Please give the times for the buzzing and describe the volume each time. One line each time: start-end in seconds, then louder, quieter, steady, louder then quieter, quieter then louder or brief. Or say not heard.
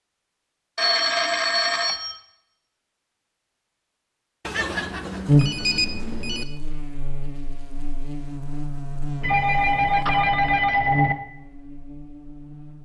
5.2-12.7 louder.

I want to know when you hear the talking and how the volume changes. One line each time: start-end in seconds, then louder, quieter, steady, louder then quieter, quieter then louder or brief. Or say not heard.
not heard.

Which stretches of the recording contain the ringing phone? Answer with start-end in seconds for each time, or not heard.
0.8-2.2, 4.5-6.5, 9.2-11.2.